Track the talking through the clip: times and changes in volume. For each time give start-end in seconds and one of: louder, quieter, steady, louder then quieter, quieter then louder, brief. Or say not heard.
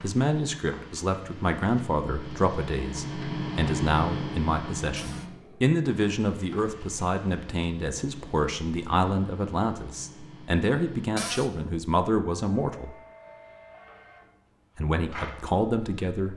0.0-12.9 steady
14.8-16.3 brief.